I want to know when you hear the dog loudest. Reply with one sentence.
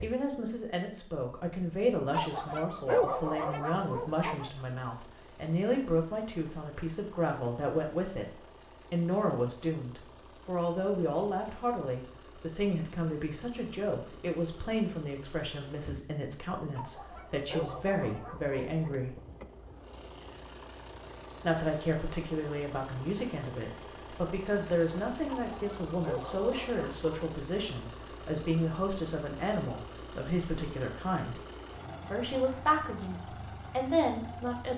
The loudest moment of the dog is at 3 seconds.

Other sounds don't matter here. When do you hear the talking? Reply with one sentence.
You can hear the talking from 0.0 to 8.2 s, from 8.9 to 19.1 s, from 21.4 to 31.4 s and from 32.0 to 34.7 s.